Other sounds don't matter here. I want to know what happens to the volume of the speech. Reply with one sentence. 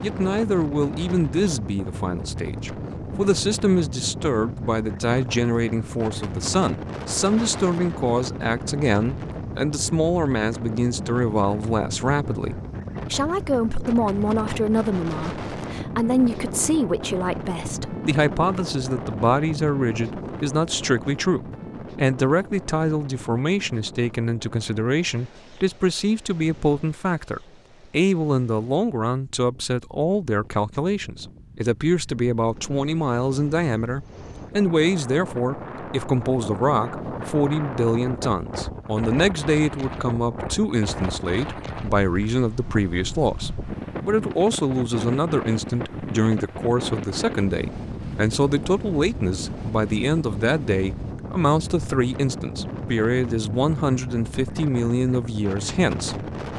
The volume of the speech stays about the same.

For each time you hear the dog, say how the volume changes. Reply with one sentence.
You can't hear the dog here.